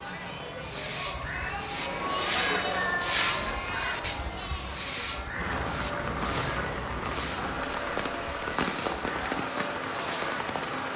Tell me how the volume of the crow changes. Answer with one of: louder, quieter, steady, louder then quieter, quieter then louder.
quieter.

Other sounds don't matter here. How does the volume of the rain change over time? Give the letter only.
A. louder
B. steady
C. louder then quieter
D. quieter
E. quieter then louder
A.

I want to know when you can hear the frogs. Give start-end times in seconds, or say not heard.
not heard.